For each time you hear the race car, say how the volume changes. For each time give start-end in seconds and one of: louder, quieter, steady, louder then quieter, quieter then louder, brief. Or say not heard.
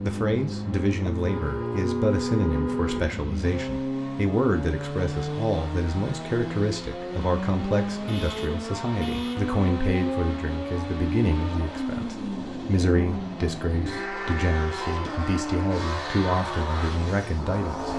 0.0-17.9 steady.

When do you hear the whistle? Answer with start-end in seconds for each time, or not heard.
not heard.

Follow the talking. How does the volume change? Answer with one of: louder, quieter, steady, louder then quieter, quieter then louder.
steady.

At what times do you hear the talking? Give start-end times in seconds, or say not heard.
0.0-17.9.